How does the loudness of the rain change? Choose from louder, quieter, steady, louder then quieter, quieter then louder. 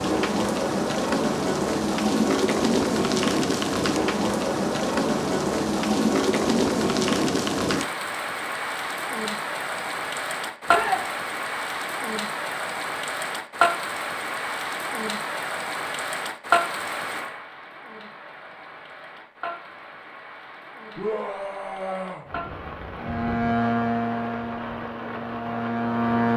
quieter.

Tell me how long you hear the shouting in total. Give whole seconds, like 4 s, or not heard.
2 s.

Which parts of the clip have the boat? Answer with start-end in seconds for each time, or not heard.
23.0-26.3.